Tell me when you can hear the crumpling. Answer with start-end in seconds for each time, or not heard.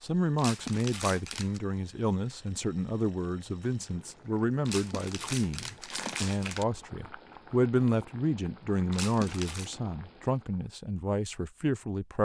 0.3-1.6, 4.7-6.7, 8.9-9.7.